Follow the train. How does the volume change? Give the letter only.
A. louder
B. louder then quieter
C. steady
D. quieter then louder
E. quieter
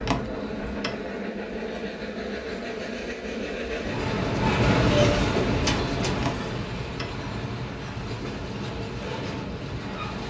B.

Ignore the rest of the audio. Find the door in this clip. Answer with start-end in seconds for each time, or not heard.
0.0-1.0, 6.2-7.2.